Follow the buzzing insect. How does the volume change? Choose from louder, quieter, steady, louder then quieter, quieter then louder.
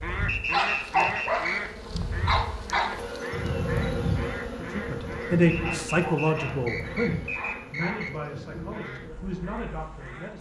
louder then quieter.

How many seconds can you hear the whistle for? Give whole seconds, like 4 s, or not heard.
4 s.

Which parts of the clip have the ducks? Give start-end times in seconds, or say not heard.
0.0-8.1, 8.7-10.3.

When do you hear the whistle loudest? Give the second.
1 s.